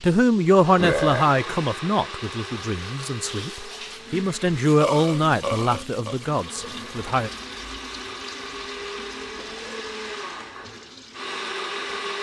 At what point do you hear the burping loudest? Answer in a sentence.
The loudest moment of the burping is at 1 second.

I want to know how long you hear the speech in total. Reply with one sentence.
The speech can be heard for 7 seconds in total.